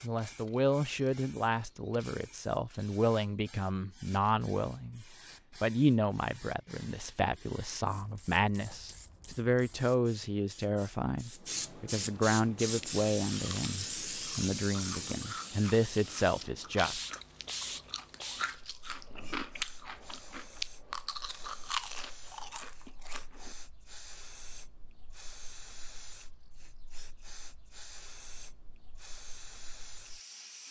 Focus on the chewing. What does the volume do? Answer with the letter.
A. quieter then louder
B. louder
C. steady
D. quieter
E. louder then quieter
B.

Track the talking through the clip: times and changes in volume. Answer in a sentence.
You can hear the talking from 0.0 to 17.0 s, at a steady volume.